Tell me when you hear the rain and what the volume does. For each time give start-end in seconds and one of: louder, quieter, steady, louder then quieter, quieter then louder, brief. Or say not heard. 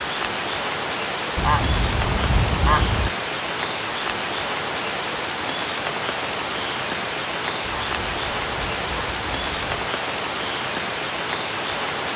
0.0-12.1 steady.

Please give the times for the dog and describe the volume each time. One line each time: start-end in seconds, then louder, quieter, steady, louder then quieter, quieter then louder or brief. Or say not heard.
not heard.